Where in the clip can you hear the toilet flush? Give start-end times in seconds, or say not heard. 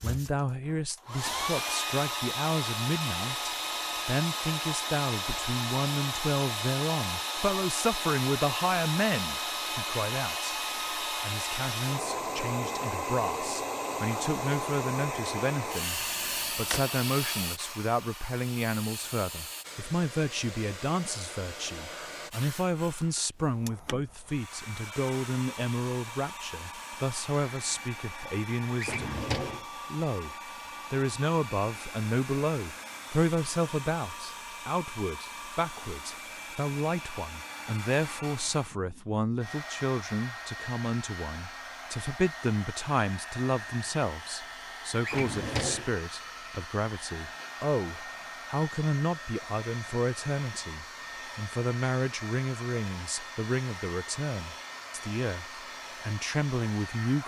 not heard.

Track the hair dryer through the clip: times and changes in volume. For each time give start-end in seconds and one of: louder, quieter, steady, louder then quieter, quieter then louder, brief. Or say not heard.
0.0-57.2 quieter.